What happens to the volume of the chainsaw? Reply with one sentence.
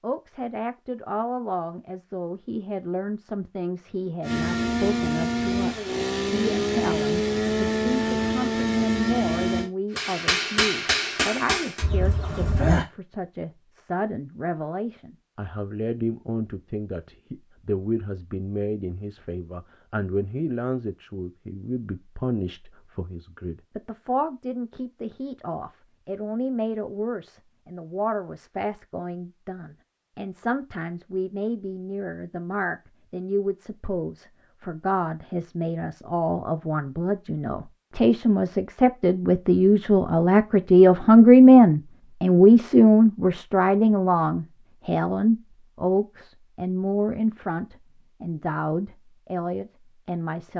The loudness of the chainsaw stays about the same.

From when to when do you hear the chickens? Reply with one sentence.
The chickens can be heard from 11.8 to 12.8 s.